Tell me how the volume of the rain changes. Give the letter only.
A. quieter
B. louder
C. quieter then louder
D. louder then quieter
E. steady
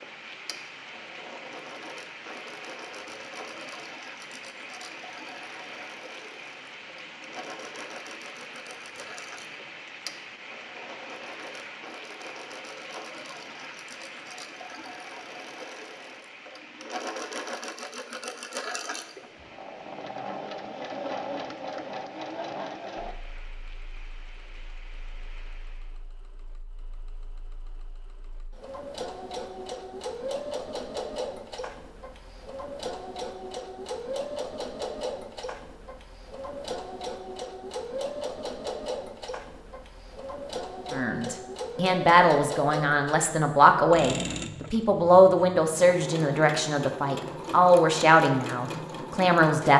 A.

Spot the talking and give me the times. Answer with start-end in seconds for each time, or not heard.
40.9-49.7.